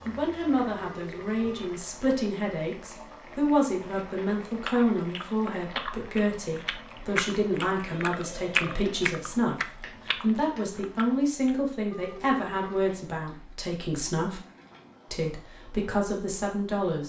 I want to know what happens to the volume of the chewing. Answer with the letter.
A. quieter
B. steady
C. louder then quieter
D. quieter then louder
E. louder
C.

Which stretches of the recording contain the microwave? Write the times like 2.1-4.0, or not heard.
not heard.